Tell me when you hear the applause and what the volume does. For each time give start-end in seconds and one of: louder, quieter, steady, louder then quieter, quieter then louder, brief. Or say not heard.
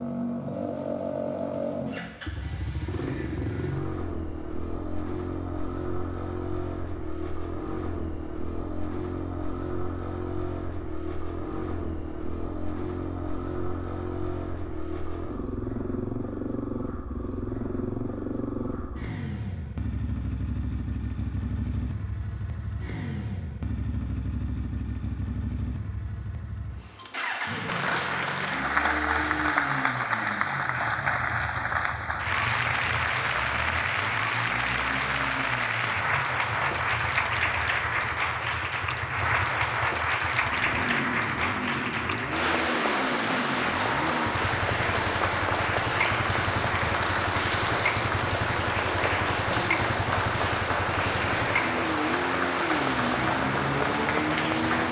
27.6-54.8 steady.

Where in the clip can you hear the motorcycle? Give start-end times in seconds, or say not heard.
0.0-54.8.